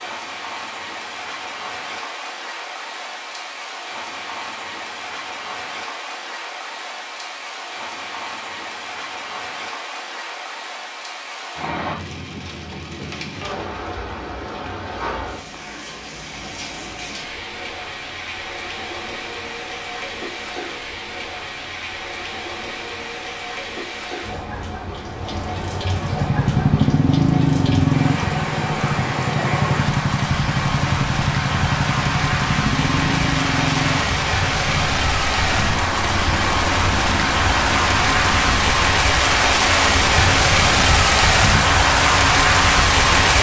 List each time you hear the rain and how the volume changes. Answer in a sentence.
You can hear the rain from 0.0 to 43.3 s, getting louder.